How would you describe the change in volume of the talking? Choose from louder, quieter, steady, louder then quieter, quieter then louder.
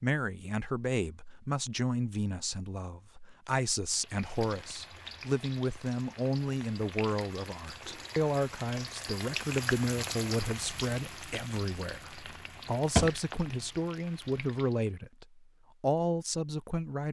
steady.